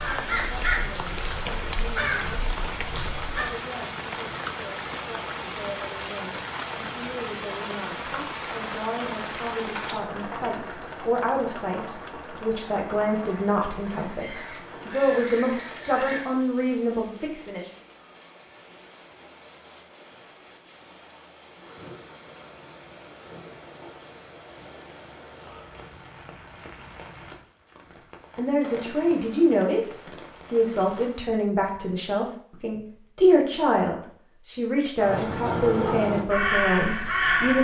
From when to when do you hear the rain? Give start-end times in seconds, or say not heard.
0.0-31.3.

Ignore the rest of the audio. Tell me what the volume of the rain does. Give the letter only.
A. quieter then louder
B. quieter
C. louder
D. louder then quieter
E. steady
B.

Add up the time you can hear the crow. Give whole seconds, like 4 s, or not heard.
9 s.